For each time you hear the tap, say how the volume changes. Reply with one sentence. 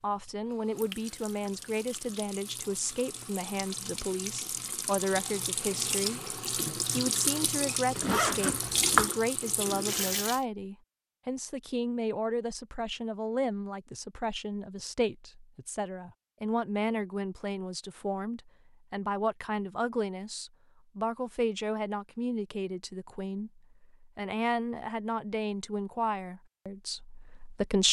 The tap can be heard from 0.0 to 10.4 s, getting louder.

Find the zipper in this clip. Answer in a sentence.
The zipper can be heard from 8.0 to 9.1 s.